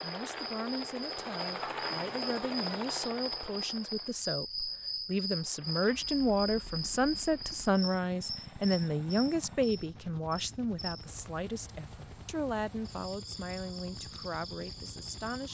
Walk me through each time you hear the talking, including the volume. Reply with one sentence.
You can hear the talking from 0.0 to 15.4 s, getting louder then quieter.